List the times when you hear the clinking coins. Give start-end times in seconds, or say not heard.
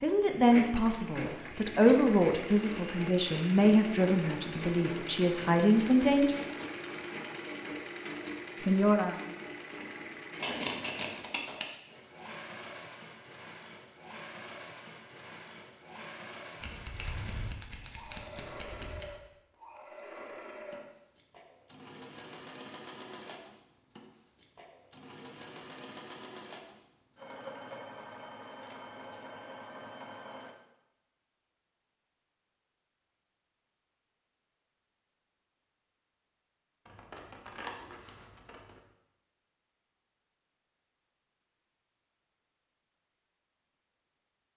not heard.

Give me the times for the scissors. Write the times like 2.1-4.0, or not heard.
10.4-11.7, 16.6-19.1, 36.9-38.8.